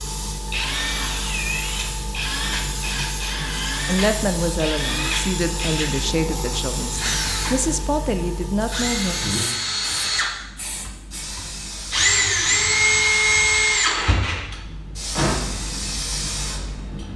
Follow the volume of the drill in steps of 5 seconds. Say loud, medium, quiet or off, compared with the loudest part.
medium, medium, loud, medium.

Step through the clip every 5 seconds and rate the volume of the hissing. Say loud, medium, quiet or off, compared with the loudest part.
loud, loud, medium, loud.